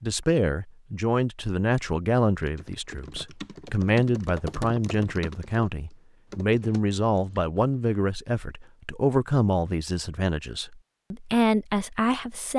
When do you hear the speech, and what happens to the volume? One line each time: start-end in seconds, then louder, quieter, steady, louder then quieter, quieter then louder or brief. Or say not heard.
0.0-12.5 steady.